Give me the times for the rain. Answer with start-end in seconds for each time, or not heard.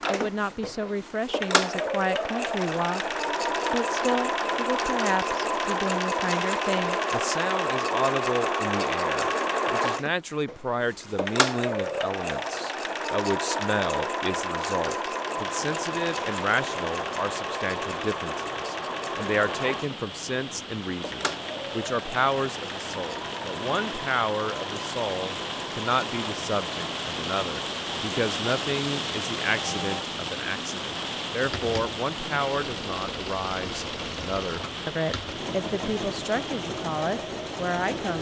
15.4-38.1.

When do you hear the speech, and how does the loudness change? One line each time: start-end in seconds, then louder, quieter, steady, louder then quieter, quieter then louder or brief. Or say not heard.
0.1-38.1 steady.